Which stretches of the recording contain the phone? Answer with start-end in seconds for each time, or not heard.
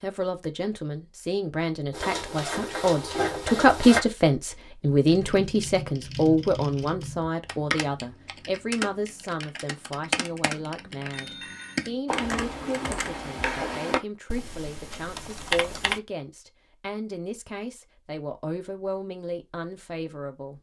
11.1-11.9.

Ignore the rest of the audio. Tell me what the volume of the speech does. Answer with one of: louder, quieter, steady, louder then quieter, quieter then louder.
quieter.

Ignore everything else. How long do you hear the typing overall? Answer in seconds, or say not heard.
11 s.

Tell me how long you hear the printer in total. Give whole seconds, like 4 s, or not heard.
2 s.